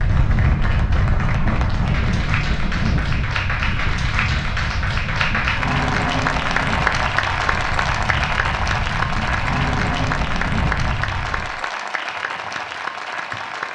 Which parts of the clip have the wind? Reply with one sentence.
You can hear the wind from 0.0 to 11.6 s.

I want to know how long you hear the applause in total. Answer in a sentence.
The applause can be heard for 14 seconds in total.